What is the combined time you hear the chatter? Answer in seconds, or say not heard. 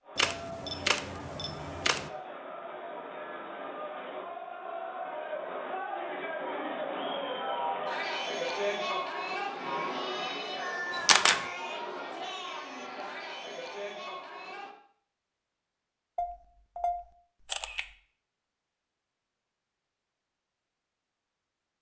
15 s.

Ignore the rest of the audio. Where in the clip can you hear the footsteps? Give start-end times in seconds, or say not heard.
not heard.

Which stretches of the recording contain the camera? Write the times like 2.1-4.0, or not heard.
0.1-2.1, 10.9-11.4, 16.1-17.9.